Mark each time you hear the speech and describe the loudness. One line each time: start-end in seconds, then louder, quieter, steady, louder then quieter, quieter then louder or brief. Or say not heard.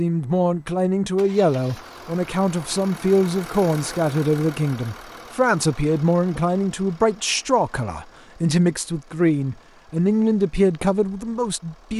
0.0-11.9 steady.